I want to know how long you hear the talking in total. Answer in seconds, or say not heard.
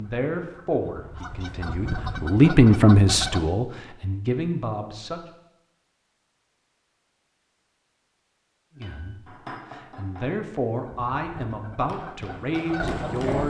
10 s.